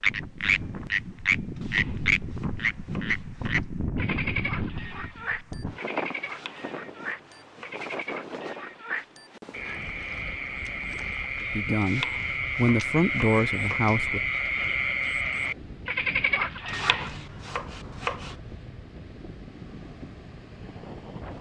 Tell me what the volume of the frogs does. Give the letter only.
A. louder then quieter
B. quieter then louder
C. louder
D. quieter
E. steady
B.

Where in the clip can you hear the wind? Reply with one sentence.
The wind can be heard from 0.0 to 21.3 s.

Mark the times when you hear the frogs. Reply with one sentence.
You can hear the frogs from 0.0 to 17.1 s.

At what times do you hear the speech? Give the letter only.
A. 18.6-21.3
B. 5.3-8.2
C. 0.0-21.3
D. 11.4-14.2
D.